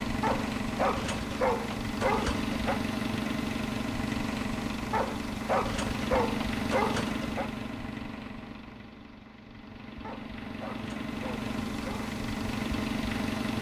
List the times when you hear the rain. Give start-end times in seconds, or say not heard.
not heard.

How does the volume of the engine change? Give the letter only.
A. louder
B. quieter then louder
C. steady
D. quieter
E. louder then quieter
B.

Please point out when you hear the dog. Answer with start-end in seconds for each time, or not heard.
0.2-2.8, 4.9-7.5, 10.0-12.2.